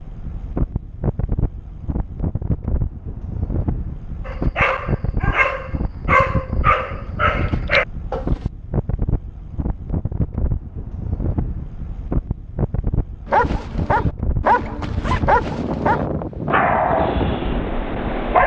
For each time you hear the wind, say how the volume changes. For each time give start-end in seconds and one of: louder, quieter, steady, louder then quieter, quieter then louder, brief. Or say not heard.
0.0-18.4 steady.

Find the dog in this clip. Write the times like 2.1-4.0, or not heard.
4.2-8.4, 13.2-18.4.